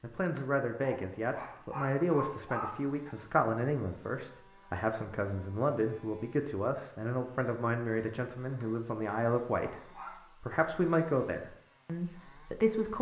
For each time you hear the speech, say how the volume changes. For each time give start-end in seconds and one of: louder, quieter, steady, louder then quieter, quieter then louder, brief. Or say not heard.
0.0-12.9 steady.